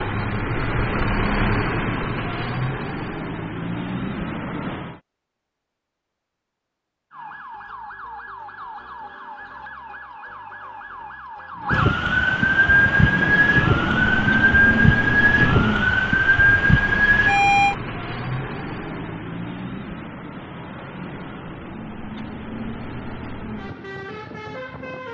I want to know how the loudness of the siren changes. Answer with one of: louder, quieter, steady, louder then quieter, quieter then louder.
louder.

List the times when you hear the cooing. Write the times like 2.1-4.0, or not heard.
not heard.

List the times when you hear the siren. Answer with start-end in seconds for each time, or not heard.
7.1-17.8.